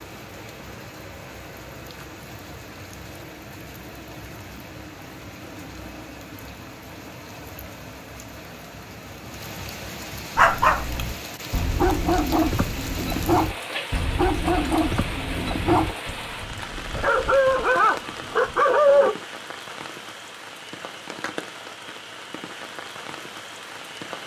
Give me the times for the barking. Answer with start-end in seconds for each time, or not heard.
10.3-19.1.